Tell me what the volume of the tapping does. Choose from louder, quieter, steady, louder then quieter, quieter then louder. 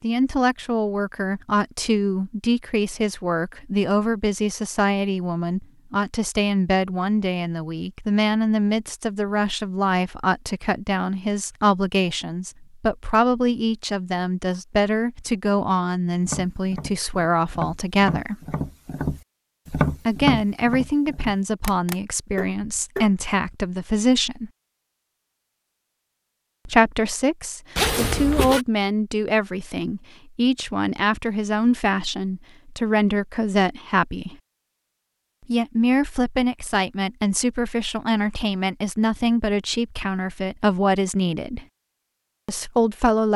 louder then quieter.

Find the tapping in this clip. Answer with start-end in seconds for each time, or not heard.
16.2-23.2.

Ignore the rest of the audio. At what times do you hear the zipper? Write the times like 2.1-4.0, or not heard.
27.8-28.6.